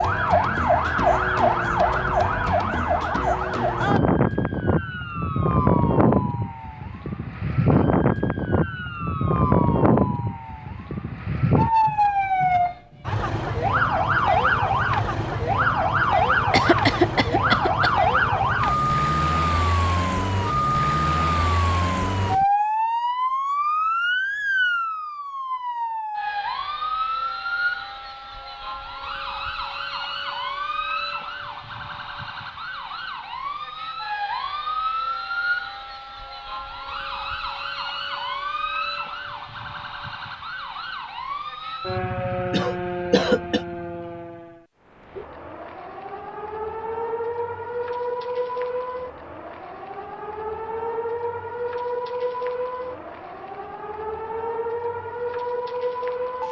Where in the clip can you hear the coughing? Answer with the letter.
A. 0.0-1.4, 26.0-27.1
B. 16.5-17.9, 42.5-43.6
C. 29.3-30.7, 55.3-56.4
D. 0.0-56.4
B.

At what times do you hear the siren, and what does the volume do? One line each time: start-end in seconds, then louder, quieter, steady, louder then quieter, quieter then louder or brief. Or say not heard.
0.0-56.4 quieter.